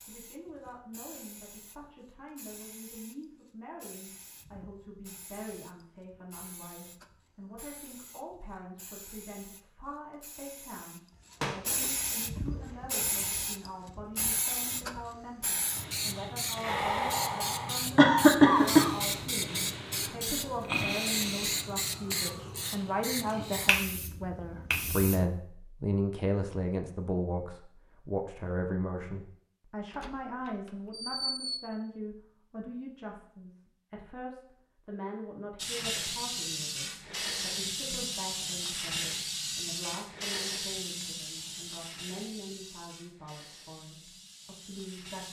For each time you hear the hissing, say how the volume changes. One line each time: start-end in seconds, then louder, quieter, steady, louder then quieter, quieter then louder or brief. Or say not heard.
0.0-25.3 louder
35.5-45.2 quieter.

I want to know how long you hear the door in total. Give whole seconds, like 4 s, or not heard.
3 s.